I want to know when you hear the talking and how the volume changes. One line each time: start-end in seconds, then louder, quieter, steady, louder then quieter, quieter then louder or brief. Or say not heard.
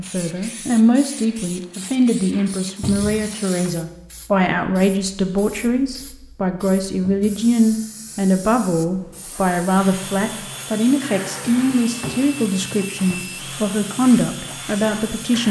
0.0-15.4 steady.